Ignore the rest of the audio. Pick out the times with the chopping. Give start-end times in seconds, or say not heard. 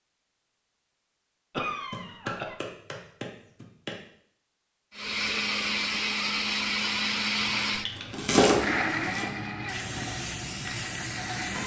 1.9-4.0, 7.8-9.2.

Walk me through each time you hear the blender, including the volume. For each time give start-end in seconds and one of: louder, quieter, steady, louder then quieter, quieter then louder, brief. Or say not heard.
4.9-11.6 quieter.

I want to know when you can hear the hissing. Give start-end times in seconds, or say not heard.
7.5-11.6.